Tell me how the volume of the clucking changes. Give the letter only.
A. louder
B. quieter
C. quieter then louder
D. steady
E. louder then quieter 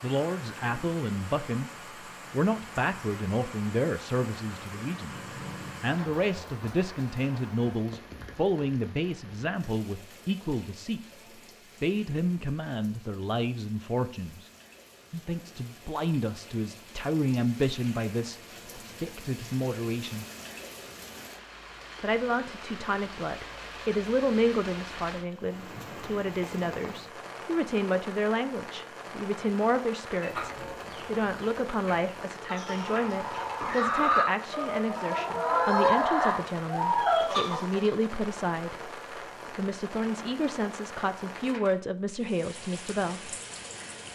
A.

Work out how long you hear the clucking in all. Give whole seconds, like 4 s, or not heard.
8 s.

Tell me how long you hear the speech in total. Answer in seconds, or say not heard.
39 s.